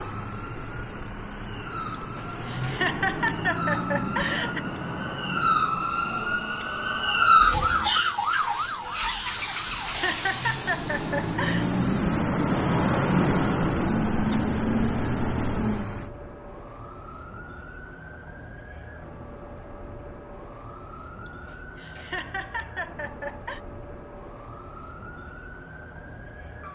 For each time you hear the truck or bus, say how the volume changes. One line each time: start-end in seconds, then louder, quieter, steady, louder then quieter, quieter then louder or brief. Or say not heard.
0.0-16.1 quieter then louder.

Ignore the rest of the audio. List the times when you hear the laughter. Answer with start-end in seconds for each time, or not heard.
1.9-4.7, 9.2-11.7, 21.2-23.6.